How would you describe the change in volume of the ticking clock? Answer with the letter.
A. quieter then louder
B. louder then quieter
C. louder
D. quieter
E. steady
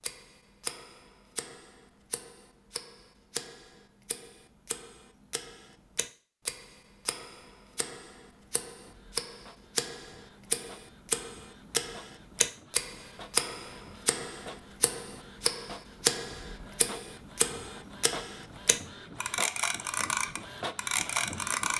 C.